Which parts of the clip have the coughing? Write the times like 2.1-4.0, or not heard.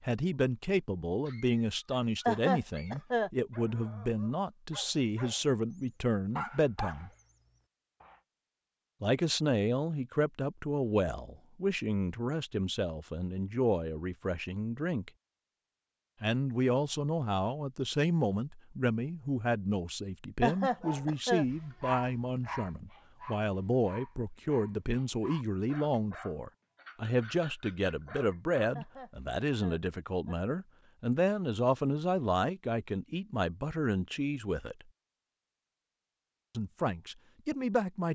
2.2-3.3, 20.4-21.4, 28.8-30.4.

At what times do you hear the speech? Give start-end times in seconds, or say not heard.
0.0-7.1, 9.0-15.1, 16.2-34.9, 36.5-38.0.